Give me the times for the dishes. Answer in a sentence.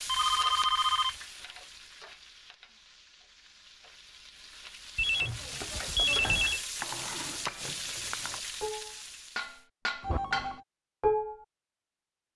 The dishes can be heard from 5.5 to 11.3 s.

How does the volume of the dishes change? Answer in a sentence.
The loudness of the dishes goes up.